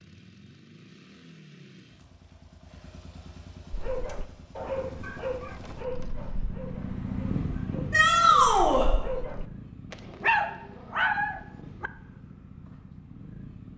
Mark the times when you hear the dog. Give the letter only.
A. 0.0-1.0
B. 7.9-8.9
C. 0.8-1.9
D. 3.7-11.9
D.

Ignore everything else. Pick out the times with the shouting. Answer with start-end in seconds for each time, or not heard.
7.9-8.9.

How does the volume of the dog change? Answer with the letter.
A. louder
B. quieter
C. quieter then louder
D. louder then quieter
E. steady
C.